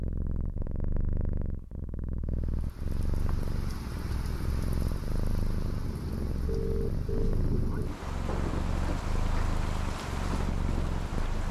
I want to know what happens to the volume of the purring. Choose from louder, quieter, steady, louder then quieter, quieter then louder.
steady.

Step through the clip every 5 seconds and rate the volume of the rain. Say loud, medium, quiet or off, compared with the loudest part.
medium, loud, loud.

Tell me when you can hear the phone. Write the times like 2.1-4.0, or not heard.
6.5-7.4.